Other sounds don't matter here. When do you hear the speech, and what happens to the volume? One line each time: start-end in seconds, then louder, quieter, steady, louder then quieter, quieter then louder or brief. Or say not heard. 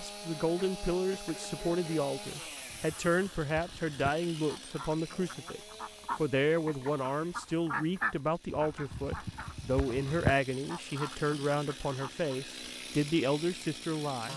0.0-14.3 steady.